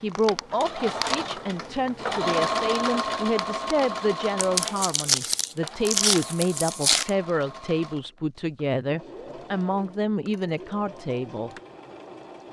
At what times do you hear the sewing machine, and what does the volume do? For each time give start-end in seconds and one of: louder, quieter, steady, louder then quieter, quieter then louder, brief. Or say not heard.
0.0-12.4 quieter.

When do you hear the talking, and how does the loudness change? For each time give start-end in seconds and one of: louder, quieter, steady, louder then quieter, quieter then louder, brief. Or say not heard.
0.0-11.5 steady.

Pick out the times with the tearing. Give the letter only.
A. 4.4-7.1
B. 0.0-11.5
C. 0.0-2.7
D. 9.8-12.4
A.